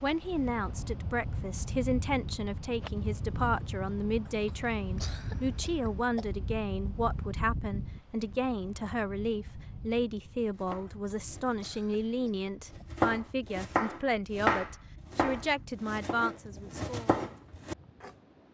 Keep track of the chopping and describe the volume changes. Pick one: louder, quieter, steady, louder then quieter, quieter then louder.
louder then quieter.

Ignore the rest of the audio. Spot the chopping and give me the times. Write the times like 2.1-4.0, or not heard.
10.4-18.1.